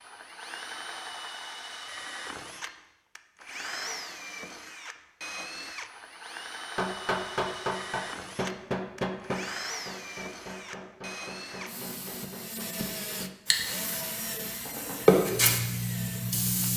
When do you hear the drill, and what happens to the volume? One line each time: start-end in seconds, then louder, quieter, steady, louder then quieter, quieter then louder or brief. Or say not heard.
0.0-16.7 steady.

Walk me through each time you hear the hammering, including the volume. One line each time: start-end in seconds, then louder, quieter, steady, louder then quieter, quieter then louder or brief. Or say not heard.
6.8-13.2 quieter.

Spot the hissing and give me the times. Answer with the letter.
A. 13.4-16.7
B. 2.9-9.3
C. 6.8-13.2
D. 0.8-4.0
A.